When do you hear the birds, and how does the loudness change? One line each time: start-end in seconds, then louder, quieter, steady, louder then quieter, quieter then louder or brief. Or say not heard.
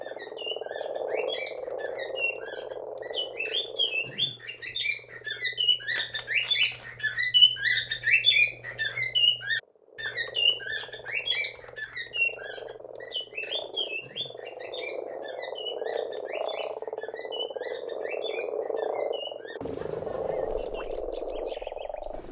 0.0-22.2 louder then quieter.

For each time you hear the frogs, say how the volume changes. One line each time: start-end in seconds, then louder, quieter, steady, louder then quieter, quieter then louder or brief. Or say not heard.
0.0-22.2 quieter then louder.